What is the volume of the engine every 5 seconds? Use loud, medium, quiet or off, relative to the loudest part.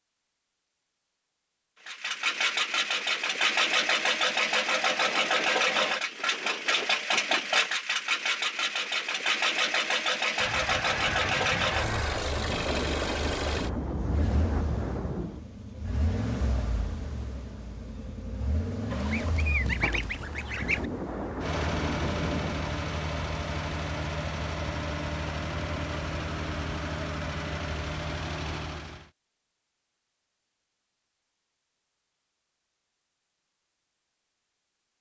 loud, loud, loud, medium, medium, medium, off.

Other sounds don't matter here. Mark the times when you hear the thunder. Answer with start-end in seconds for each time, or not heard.
10.8-15.4, 19.0-22.6.